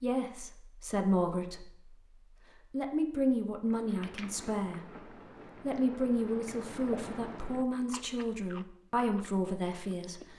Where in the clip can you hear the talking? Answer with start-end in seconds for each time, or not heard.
0.0-1.9, 2.7-10.3.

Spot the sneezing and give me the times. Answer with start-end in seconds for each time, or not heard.
not heard.